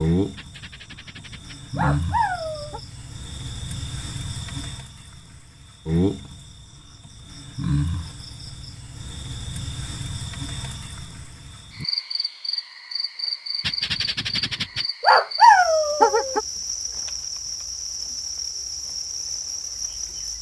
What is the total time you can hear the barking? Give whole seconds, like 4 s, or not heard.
5 s.